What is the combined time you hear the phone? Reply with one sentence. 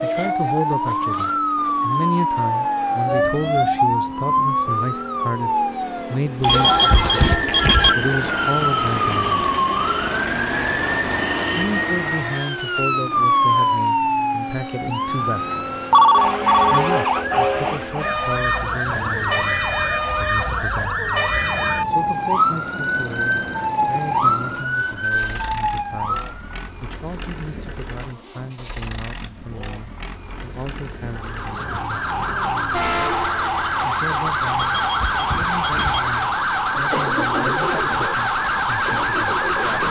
The phone can be heard for 4 seconds in total.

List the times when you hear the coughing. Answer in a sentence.
The coughing can be heard from 36.7 to 37.8 s.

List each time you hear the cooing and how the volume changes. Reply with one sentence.
The cooing can't be heard in this clip.